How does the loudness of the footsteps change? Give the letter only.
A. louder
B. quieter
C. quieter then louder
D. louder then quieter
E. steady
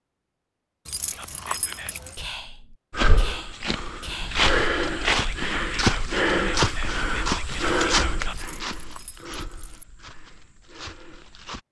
B.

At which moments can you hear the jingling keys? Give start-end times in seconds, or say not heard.
0.8-2.2, 8.3-9.8.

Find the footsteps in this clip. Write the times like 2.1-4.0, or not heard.
2.9-11.6.